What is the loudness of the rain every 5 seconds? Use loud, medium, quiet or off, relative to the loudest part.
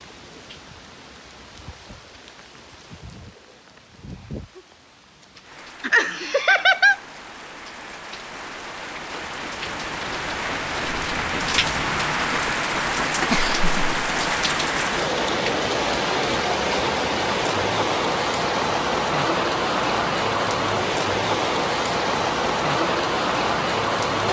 quiet, quiet, loud, loud, loud.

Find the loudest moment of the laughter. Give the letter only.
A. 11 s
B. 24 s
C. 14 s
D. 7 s
D.